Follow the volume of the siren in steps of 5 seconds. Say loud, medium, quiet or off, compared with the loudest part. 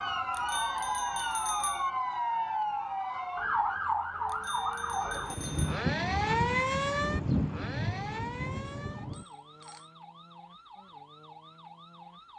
loud, loud, quiet.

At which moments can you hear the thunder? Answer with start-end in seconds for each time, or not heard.
5.3-9.2.